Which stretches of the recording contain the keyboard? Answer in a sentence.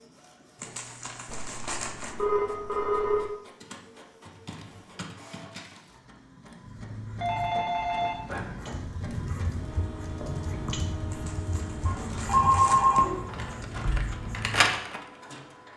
You can hear the keyboard from 3.6 to 5.8 s and from 8.6 to 15.1 s.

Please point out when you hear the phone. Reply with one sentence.
The phone can be heard from 1.2 to 3.2 s, from 7.2 to 8.8 s and from 11.8 to 13.1 s.